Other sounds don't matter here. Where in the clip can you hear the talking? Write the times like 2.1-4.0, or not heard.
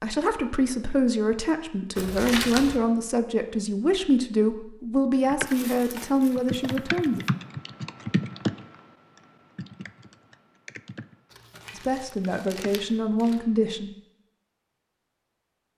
0.0-7.2, 11.8-13.9.